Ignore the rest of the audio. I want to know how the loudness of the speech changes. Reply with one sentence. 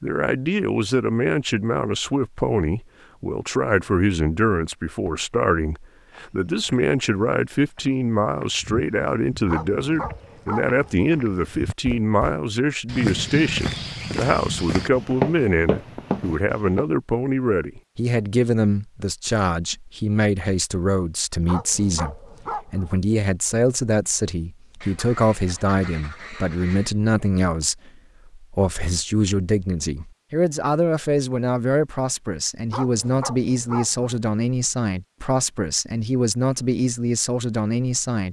The loudness of the speech stays about the same.